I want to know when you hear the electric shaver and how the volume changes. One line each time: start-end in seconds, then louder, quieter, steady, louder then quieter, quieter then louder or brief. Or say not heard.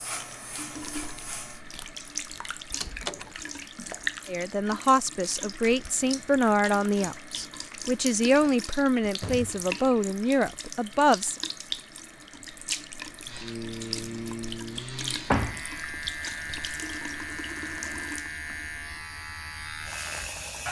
0.0-1.6 brief
13.2-20.6 steady.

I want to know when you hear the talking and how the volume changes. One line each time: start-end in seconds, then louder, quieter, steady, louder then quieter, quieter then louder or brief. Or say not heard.
4.2-11.3 steady.